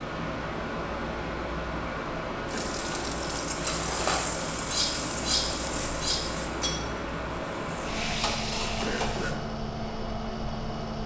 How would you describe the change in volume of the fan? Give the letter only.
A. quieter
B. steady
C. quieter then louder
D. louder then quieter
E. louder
B.